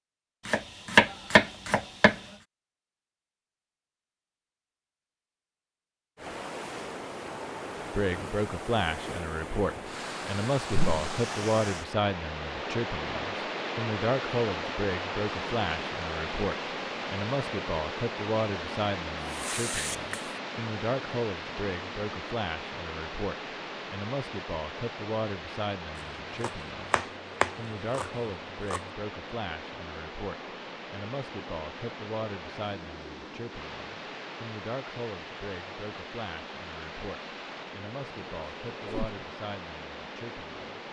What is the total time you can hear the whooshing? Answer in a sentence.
The whooshing can be heard for 2 seconds in total.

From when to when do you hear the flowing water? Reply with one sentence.
You can hear the flowing water from 6.2 to 40.8 s.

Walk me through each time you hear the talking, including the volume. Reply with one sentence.
You can hear the talking from 8.0 to 40.8 s, getting quieter.